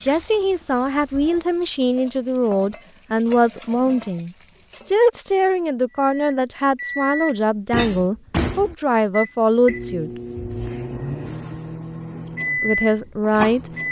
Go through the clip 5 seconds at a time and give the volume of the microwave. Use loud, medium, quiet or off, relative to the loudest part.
off, loud, loud.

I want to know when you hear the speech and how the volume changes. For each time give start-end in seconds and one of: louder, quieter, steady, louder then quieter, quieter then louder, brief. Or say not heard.
0.0-10.1 steady
12.6-13.7 brief.